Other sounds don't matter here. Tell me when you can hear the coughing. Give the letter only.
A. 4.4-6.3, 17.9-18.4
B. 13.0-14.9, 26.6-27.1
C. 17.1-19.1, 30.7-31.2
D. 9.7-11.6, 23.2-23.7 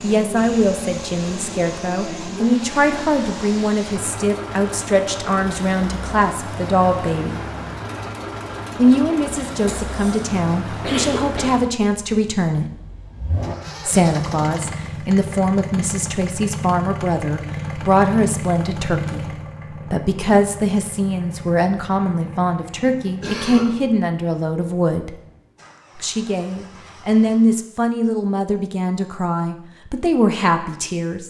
D.